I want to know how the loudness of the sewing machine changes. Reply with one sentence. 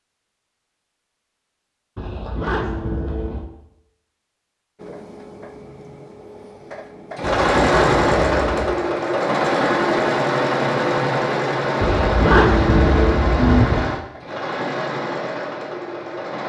The loudness of the sewing machine goes up, then down.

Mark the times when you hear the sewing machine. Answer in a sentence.
You can hear the sewing machine from 4.8 to 16.4 s.